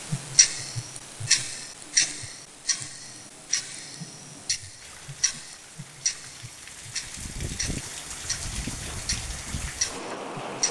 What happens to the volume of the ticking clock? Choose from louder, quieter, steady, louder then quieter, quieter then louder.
quieter then louder.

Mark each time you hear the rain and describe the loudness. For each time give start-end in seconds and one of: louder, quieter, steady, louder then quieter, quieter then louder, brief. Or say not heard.
4.8-10.6 louder.